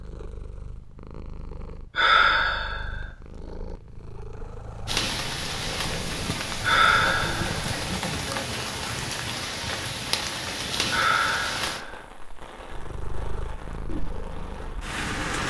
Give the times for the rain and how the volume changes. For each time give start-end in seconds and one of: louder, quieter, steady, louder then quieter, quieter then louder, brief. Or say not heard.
4.8-15.4 quieter.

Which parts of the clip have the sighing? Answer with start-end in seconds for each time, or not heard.
1.9-3.0, 6.6-7.6, 10.9-12.0.